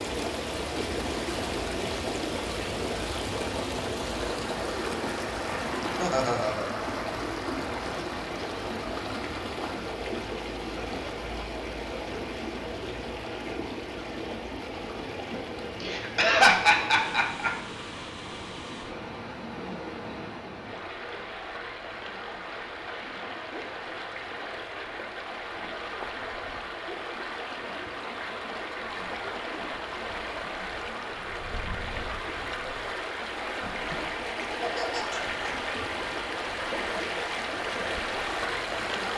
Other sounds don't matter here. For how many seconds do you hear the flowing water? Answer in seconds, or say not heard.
39 s.